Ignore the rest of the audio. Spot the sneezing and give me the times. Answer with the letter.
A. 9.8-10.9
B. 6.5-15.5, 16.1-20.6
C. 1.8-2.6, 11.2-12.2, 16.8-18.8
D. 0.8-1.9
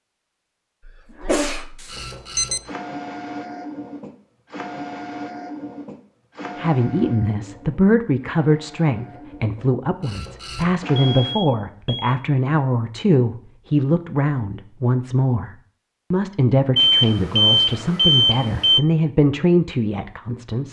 D.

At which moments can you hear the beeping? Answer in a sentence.
You can hear the beeping from 1.8 to 2.6 s, from 11.2 to 12.2 s and from 16.8 to 18.8 s.